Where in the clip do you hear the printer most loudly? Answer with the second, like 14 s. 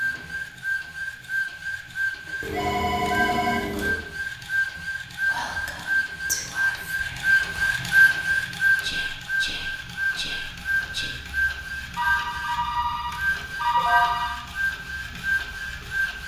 8 s.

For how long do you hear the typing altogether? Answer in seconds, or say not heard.
not heard.